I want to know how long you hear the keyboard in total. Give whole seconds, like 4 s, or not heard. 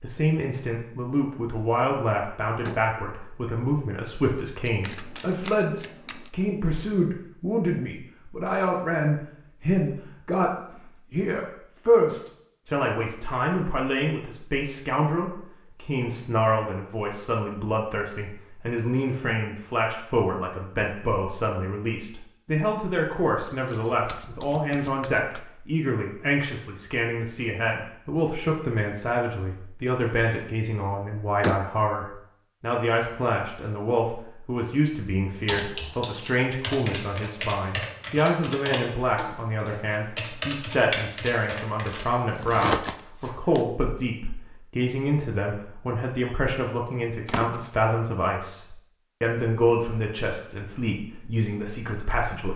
7 s.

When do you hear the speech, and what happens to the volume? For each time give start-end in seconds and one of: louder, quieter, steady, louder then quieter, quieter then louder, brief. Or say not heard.
0.0-52.5 steady.